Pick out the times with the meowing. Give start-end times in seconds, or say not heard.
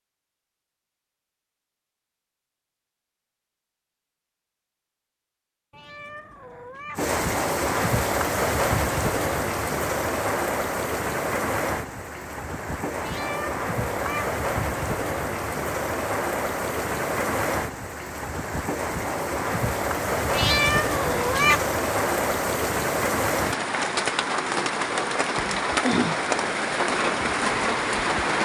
5.7-7.0, 13.0-14.3, 20.3-21.6.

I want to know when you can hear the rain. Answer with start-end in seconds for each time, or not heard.
7.0-28.3.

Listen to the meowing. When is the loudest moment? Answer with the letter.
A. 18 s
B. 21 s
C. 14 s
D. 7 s
B.